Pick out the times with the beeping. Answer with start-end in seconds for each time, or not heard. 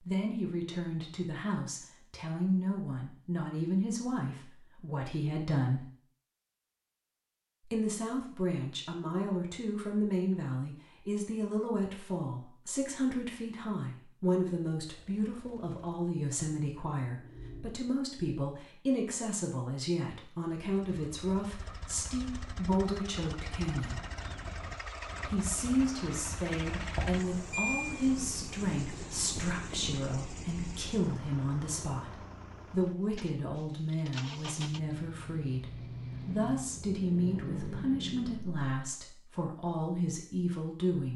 26.9-27.9.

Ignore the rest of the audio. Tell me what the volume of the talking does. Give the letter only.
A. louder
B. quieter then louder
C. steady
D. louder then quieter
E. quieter
C.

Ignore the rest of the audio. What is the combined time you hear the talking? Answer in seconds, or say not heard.
38 s.